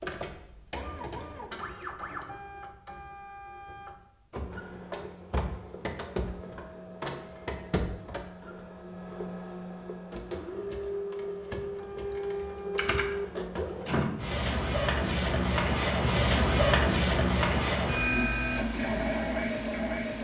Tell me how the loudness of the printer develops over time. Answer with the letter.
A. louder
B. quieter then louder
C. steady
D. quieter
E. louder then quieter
A.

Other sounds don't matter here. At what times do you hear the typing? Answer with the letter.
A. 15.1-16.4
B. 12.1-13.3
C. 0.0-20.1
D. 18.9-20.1
B.